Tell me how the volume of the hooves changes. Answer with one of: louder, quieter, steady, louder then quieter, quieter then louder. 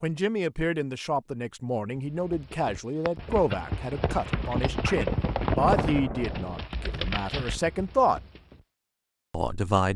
louder then quieter.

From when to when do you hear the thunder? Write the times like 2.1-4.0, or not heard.
5.5-6.7.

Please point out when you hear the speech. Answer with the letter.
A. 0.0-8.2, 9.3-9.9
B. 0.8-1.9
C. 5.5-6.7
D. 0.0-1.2
A.